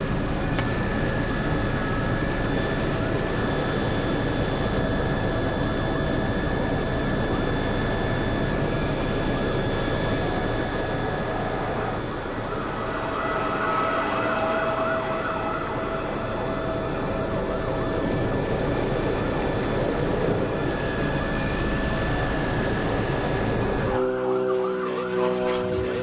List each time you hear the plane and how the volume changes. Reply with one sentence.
You can hear the plane from 0.0 to 25.9 s, getting quieter then louder.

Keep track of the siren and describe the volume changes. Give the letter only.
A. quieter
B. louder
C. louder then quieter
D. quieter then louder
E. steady
C.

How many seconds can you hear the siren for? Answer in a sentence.
The siren can be heard for 26 seconds in total.